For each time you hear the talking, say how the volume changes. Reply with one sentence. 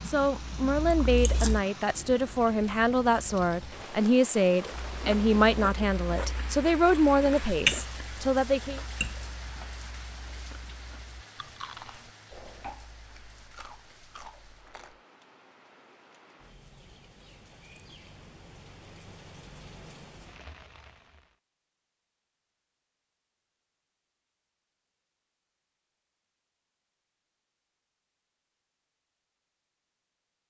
The talking can be heard from 0.0 to 8.8 s, at a steady volume.